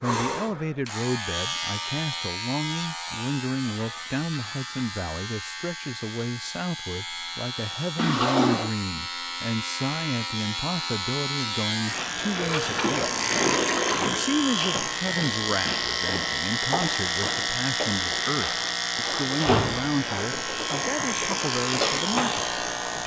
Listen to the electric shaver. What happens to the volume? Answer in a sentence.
The volume of the electric shaver goes up.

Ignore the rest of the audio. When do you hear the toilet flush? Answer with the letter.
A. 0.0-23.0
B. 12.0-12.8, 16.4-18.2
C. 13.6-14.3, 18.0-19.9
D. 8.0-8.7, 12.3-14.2
D.